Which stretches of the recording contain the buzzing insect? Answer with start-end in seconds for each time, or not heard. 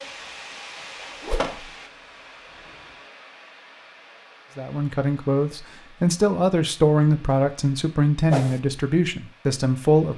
0.0-3.0.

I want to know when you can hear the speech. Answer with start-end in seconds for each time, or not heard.
4.5-10.1.